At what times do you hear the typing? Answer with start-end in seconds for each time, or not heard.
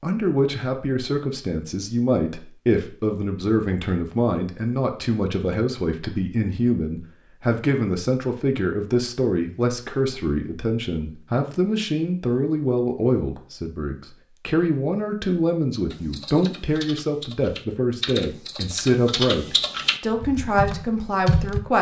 15.9-21.6.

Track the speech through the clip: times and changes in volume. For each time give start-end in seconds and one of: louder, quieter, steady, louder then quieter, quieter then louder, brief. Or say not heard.
0.0-21.7 steady.